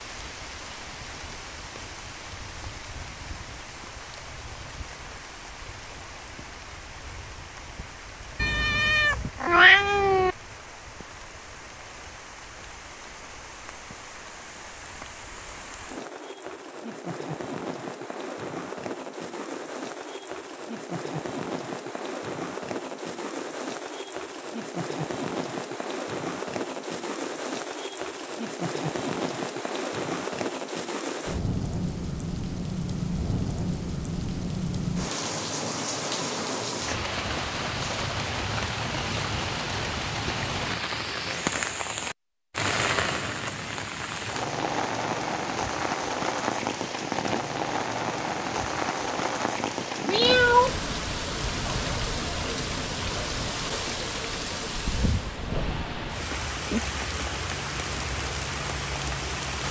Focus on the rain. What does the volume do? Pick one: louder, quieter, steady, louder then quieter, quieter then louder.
louder.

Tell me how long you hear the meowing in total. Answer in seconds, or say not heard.
3 s.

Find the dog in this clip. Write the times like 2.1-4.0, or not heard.
not heard.